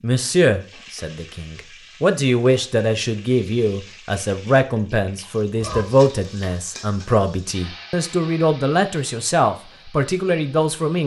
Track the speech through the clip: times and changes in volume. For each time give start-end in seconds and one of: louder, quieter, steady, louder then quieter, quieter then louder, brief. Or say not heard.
0.0-11.0 steady.